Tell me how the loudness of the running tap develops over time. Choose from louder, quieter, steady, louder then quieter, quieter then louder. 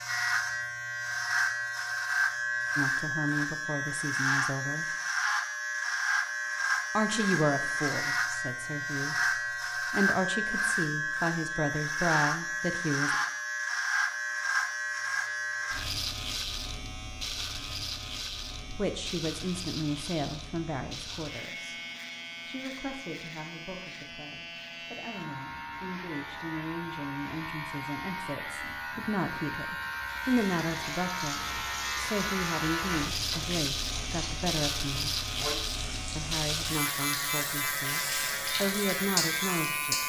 louder.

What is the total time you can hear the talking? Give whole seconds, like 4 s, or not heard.
28 s.